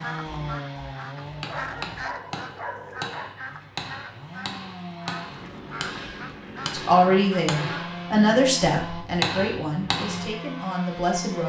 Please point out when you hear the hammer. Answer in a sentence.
The hammer can be heard from 1.1 to 10.3 s.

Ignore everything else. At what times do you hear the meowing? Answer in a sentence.
You can't hear the meowing here.